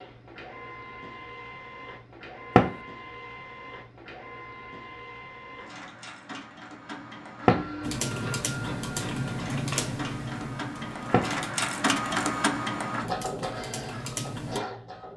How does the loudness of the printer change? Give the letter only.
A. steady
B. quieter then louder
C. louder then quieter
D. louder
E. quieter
D.